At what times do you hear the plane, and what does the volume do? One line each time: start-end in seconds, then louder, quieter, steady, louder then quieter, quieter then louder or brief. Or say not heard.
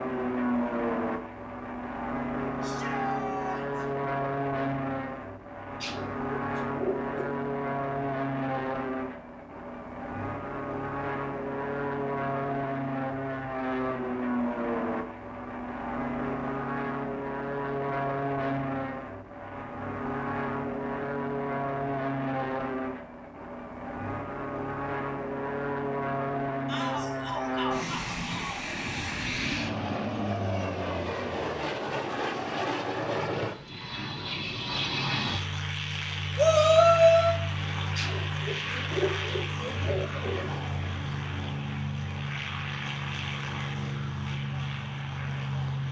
0.0-45.8 steady.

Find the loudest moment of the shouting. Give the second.
37 s.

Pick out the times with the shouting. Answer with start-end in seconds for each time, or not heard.
2.6-3.9, 26.6-28.6, 36.4-37.4.